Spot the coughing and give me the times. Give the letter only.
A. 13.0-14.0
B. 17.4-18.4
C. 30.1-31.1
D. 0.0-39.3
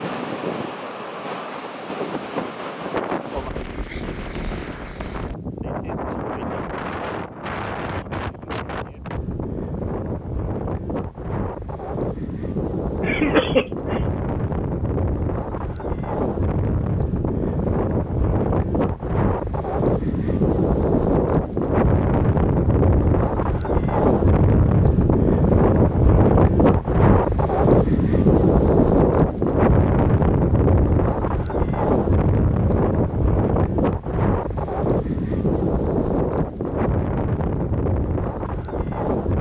A.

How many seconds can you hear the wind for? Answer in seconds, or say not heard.
39 s.